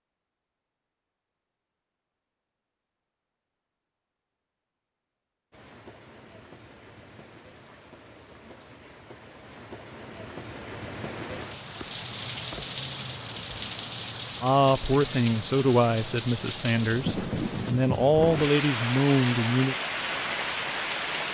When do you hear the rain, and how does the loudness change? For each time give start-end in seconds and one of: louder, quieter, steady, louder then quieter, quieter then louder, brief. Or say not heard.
5.5-21.3 louder.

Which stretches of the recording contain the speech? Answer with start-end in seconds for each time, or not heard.
14.4-19.8.